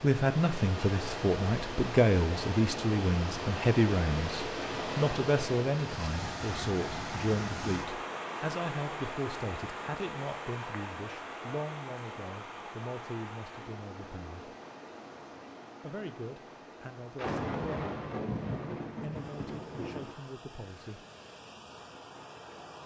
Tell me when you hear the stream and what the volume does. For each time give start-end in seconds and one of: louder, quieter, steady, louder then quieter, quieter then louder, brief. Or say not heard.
0.0-22.8 quieter.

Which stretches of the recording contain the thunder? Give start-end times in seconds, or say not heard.
17.1-20.1.